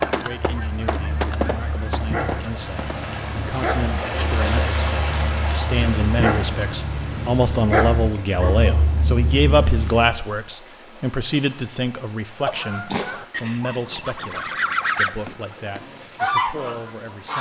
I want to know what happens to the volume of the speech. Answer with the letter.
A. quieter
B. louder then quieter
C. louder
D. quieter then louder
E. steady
B.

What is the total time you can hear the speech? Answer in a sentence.
The speech can be heard for 17 seconds in total.